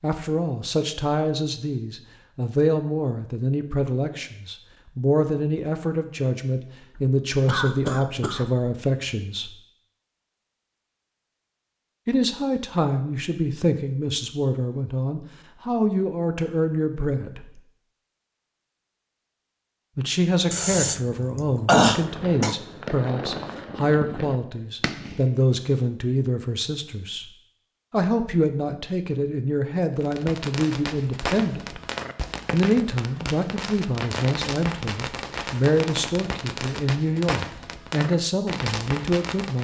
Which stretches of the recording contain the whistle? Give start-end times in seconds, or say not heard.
not heard.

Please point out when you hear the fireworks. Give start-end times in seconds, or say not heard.
21.9-25.4, 30.0-39.5.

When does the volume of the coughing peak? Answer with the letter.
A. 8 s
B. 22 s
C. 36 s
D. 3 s
B.